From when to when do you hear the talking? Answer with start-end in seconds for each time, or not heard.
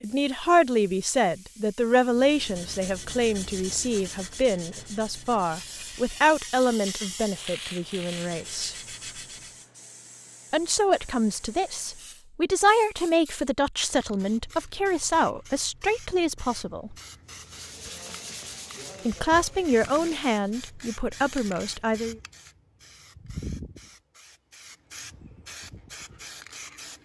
0.0-8.8, 10.5-16.9, 19.1-22.1.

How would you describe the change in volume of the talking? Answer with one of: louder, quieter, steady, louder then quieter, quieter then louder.
steady.